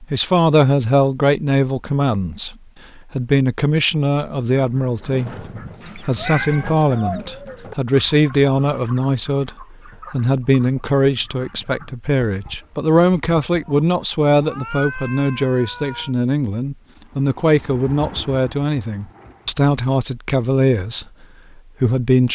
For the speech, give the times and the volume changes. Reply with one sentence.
You can hear the speech from 0.0 to 22.3 s, at a steady volume.